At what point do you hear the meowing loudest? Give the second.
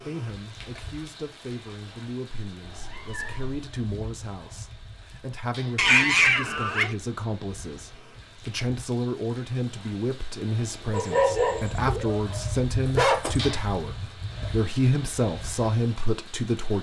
6 s.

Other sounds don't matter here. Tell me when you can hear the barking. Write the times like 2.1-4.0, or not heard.
10.9-14.6.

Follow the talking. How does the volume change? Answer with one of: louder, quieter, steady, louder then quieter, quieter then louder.
louder.